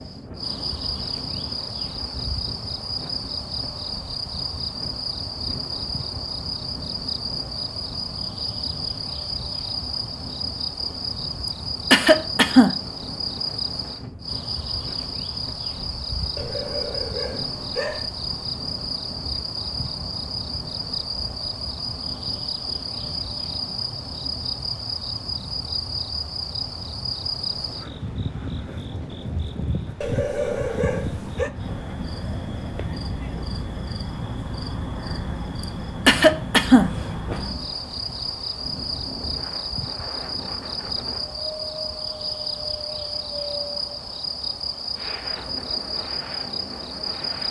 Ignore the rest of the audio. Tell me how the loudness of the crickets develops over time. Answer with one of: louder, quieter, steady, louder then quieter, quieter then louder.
steady.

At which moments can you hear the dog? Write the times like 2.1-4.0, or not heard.
16.4-18.1, 30.0-31.5.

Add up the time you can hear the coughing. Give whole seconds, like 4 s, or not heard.
2 s.